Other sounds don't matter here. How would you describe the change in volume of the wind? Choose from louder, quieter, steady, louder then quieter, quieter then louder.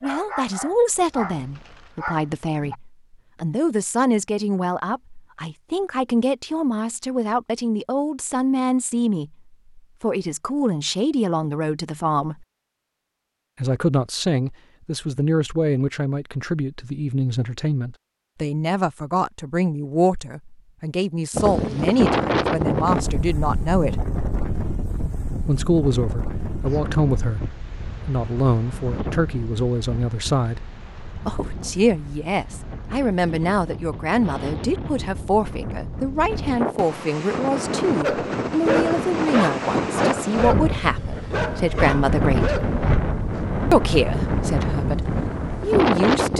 quieter then louder.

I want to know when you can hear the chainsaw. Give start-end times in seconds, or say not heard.
not heard.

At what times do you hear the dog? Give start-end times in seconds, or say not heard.
0.0-2.8, 38.0-43.5.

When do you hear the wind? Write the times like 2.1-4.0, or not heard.
21.3-46.3.